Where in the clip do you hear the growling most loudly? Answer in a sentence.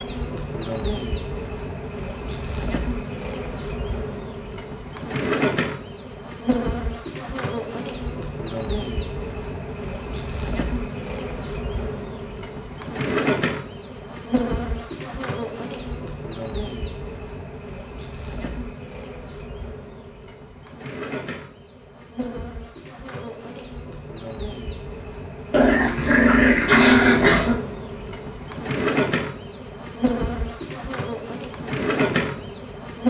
The loudest moment of the growling is at 27 seconds.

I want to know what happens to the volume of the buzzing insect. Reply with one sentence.
The loudness of the buzzing insect goes down, then up.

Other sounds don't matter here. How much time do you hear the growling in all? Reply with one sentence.
The growling can be heard for 2 seconds in total.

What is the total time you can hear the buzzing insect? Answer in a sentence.
You can hear the buzzing insect for 33 seconds altogether.